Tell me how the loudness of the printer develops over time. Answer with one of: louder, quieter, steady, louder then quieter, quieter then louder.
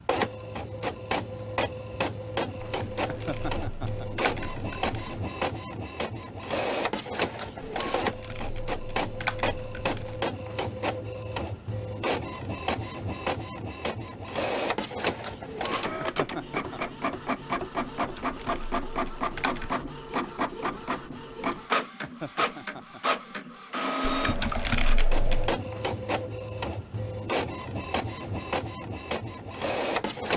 steady.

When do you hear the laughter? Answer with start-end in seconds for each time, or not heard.
3.0-4.1, 16.0-16.8, 22.0-23.0.